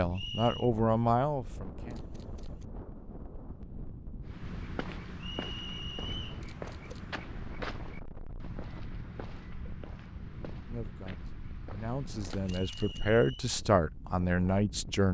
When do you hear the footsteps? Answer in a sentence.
You can hear the footsteps from 4.2 to 12.6 s.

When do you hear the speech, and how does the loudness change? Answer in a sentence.
You can hear the speech briefly from 0.0 to 2.0 s; and from 10.7 to 15.0 s, getting louder.